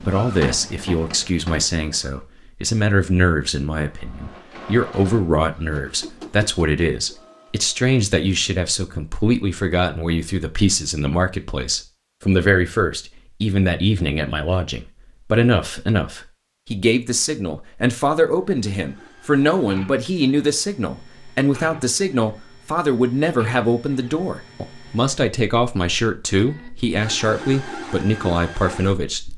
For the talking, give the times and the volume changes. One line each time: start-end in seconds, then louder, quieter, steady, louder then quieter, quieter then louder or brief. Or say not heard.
0.1-29.3 steady.